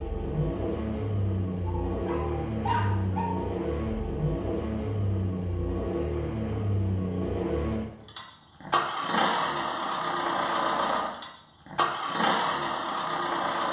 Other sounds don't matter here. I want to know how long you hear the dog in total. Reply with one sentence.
The dog can be heard for 2 seconds in total.